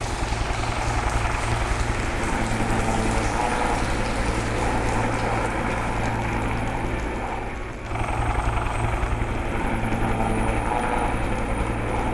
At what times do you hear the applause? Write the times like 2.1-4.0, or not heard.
0.0-12.1.